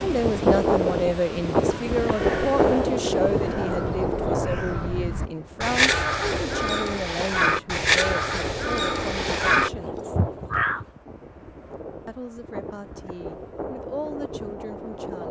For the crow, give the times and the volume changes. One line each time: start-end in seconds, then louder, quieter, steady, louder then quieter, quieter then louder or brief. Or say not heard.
2.0-10.8 louder.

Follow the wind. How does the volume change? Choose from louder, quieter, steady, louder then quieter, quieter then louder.
quieter.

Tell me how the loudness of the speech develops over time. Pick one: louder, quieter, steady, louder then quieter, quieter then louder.
quieter.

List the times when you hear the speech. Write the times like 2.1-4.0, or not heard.
0.0-10.2, 12.1-15.2.